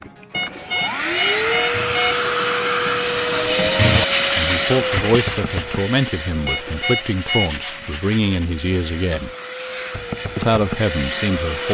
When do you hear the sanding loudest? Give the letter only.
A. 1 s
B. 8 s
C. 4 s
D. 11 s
C.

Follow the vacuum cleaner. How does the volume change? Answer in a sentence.
The volume of the vacuum cleaner goes down, then up.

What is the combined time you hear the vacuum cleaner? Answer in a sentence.
You can hear the vacuum cleaner for 12 seconds altogether.